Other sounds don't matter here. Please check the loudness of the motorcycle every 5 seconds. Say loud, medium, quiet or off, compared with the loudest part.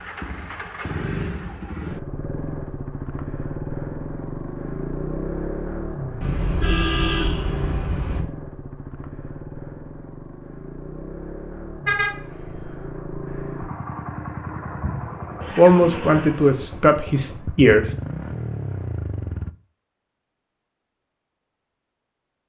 loud, loud, loud, loud, off.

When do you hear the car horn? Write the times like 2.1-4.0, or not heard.
6.2-8.2, 11.8-12.8.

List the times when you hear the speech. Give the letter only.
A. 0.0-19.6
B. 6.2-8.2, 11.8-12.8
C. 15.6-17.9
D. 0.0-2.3
C.